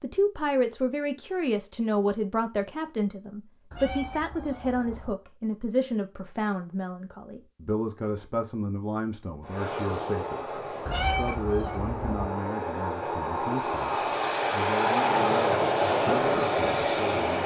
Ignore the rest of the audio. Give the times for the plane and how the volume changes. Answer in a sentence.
The plane can be heard from 9.4 to 17.4 s, getting louder.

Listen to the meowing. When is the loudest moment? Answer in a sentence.
The loudest moment of the meowing is at 11 seconds.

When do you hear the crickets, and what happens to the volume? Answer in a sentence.
You can't hear the crickets here.